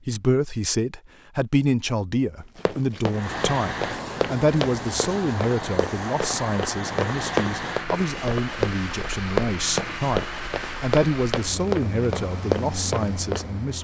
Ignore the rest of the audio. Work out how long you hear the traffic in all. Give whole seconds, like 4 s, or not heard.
11 s.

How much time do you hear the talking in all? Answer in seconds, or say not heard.
14 s.